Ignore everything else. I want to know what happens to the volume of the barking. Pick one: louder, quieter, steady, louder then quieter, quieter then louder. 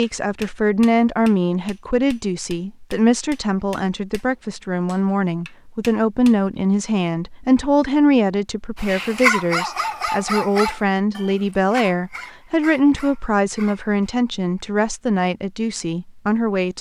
quieter.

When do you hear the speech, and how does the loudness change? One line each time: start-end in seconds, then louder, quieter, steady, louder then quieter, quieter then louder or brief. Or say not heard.
0.0-16.7 steady.